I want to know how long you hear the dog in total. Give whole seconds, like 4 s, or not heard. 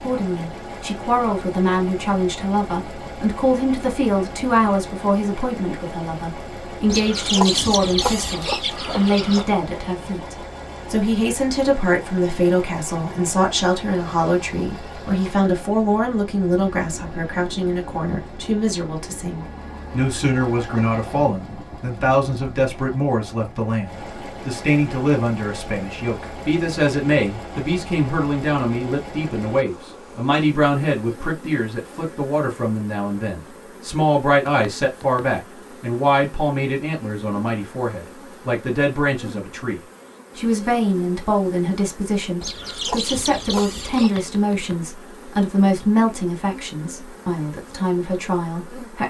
not heard.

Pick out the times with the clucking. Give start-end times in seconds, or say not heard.
6.8-9.5, 42.4-44.2.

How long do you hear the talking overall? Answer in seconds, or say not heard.
49 s.